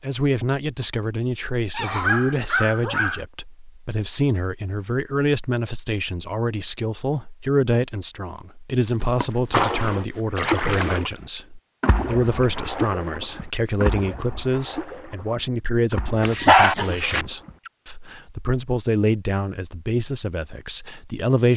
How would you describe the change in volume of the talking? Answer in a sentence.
The volume of the talking stays about the same.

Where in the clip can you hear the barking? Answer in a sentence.
The barking can be heard from 1.7 to 3.2 s, from 9.1 to 10.5 s and from 16.2 to 17.2 s.